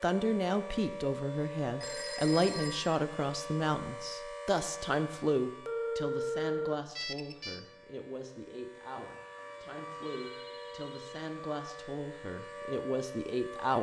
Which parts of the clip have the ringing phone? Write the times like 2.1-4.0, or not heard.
1.8-3.0, 5.7-7.6, 9.3-11.3.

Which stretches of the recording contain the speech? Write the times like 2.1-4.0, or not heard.
0.0-13.7.